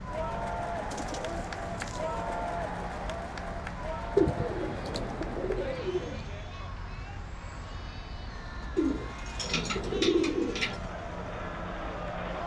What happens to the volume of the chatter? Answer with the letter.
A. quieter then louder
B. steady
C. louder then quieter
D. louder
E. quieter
A.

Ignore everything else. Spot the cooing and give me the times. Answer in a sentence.
The cooing can be heard from 0.9 to 2.2 s, from 4.2 to 6.2 s and from 8.8 to 10.8 s.